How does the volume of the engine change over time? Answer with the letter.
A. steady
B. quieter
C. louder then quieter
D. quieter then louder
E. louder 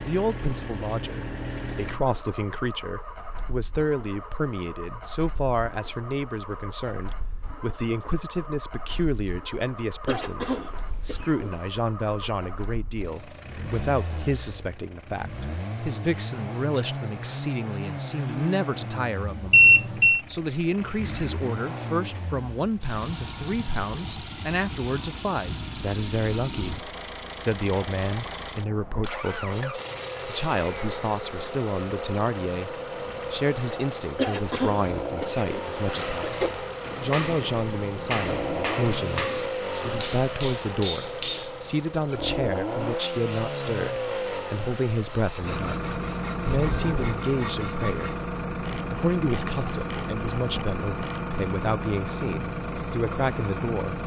E.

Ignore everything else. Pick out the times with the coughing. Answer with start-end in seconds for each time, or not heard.
10.1-11.7, 34.1-36.5.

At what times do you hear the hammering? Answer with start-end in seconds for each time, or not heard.
36.8-41.5.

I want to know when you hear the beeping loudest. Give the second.
20 s.